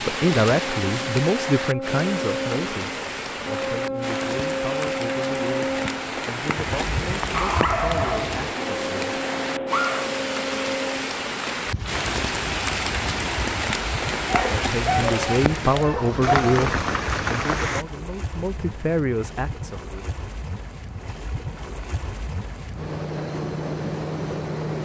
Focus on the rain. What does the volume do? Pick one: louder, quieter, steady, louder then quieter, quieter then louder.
steady.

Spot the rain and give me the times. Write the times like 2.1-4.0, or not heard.
0.0-17.9.